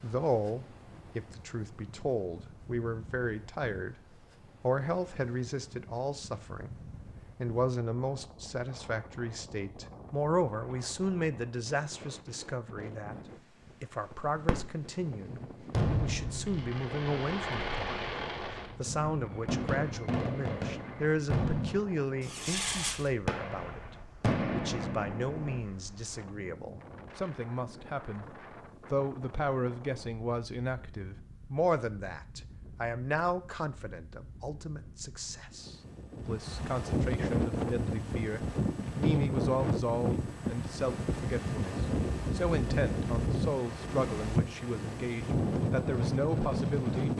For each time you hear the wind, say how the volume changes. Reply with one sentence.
The wind can be heard from 0.0 to 47.1 s, getting louder.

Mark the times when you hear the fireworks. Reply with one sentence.
The fireworks can be heard from 14.4 to 14.9 s and from 15.7 to 25.6 s.